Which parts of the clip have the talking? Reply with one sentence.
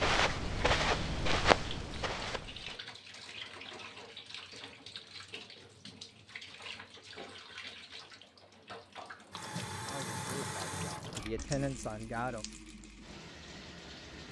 You can hear the talking from 9.8 to 12.4 s.